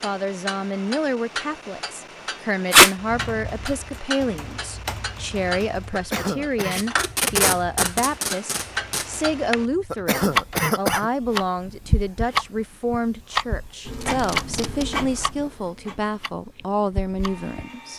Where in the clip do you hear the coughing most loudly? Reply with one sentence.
The volume of the coughing peaks at 11 seconds.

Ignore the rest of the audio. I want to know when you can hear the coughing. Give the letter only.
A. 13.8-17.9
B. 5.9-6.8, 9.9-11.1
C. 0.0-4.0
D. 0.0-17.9
B.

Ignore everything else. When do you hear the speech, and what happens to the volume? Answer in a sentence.
You can hear the speech from 0.0 to 17.9 s, at a steady volume.